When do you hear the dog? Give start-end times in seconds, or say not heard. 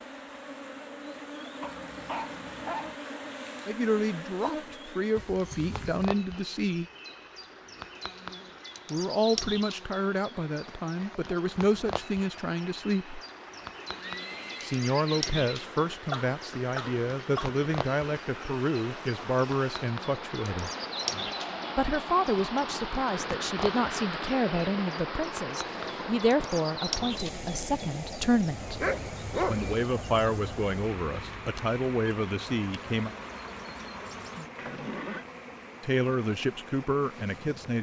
1.6-3.0, 15.7-17.6, 28.8-29.7.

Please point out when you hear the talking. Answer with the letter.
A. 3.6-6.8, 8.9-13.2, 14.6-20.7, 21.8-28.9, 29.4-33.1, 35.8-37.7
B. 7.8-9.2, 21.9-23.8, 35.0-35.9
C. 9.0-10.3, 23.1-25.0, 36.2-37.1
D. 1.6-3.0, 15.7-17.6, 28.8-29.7
A.